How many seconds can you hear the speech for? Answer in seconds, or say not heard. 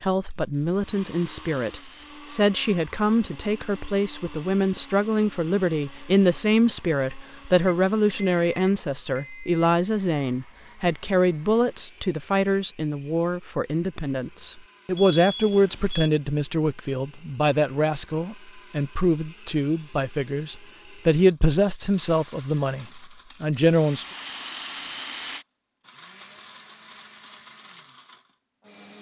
24 s.